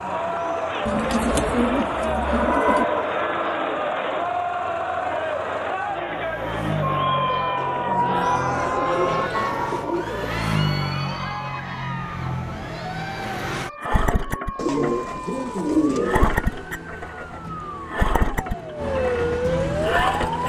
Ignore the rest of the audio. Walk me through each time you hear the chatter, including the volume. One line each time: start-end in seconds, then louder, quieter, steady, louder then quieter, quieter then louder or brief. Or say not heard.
0.0-13.7 quieter.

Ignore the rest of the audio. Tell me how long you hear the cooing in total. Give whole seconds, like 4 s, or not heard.
7 s.